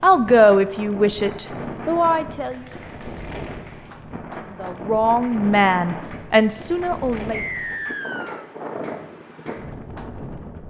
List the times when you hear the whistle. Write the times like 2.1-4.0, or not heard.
7.3-8.4.